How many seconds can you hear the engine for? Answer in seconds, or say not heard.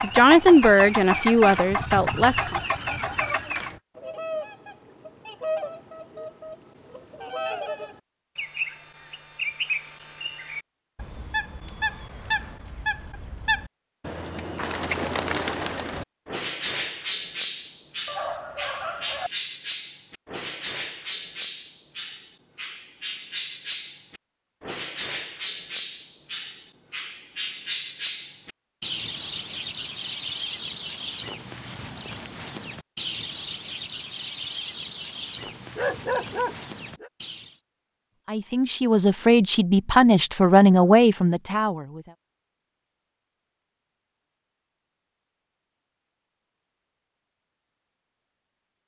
4 s.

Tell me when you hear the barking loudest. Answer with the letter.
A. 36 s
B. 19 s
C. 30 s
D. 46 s
A.